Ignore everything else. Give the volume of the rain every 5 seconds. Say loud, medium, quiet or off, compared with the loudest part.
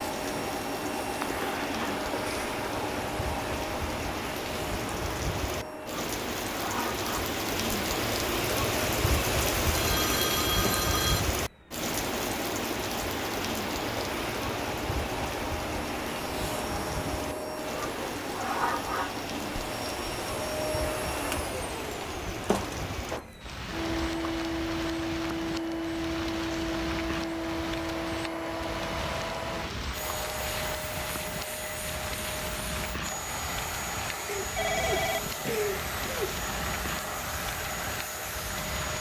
medium, loud, loud, medium, medium, medium, medium, medium.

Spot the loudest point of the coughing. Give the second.
36 s.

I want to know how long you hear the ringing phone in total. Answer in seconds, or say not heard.
2 s.